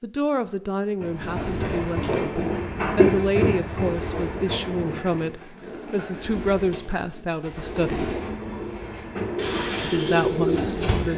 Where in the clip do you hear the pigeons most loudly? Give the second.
10 s.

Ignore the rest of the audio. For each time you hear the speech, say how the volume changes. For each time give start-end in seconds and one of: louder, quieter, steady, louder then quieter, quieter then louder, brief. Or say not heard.
0.0-8.1 steady
9.8-11.1 brief.